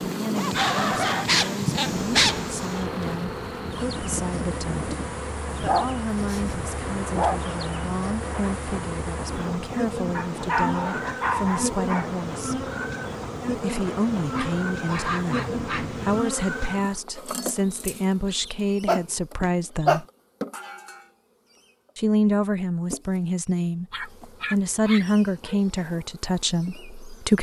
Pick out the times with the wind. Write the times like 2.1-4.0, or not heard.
0.0-17.0.